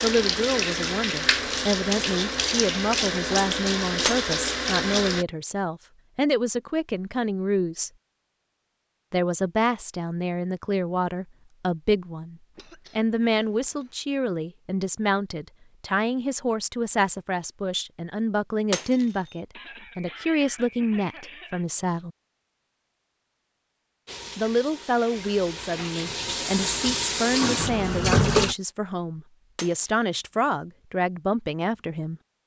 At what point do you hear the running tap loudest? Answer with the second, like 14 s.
28 s.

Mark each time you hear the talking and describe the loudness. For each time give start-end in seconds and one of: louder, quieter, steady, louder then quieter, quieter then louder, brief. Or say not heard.
0.0-7.9 steady
9.1-22.1 steady
24.4-32.2 steady.